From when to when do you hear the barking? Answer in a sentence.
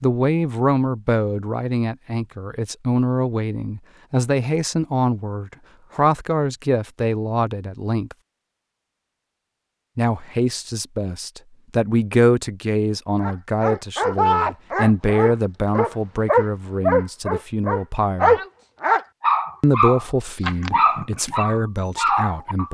You can hear the barking from 13.2 to 22.7 s.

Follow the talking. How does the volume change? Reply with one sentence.
The loudness of the talking stays about the same.